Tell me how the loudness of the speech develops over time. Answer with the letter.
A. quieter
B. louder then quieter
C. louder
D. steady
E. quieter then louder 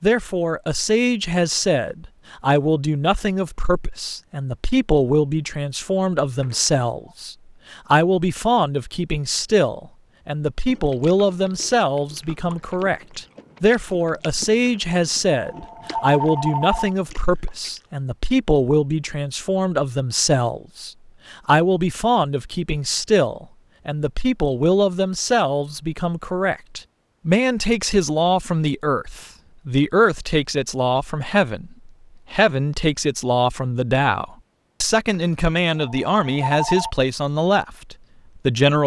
D.